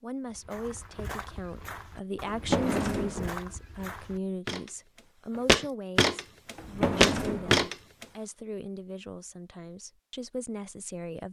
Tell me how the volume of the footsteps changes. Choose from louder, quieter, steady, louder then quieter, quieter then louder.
louder.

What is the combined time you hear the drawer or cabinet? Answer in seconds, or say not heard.
2 s.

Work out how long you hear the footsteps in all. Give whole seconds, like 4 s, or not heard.
8 s.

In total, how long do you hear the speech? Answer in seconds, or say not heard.
11 s.